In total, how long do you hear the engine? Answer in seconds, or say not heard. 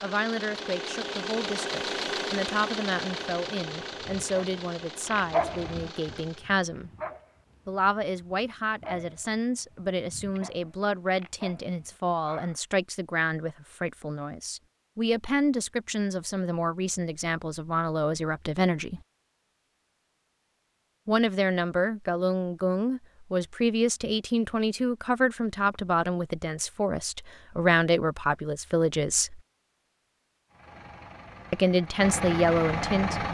9 s.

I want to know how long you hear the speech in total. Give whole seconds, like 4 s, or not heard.
28 s.